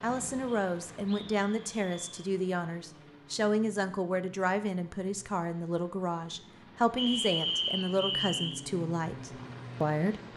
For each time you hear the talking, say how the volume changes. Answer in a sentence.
The talking can be heard from 0.0 to 10.2 s, at a steady volume.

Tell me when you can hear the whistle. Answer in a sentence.
The whistle can be heard from 0.5 to 2.3 s and from 7.0 to 8.6 s.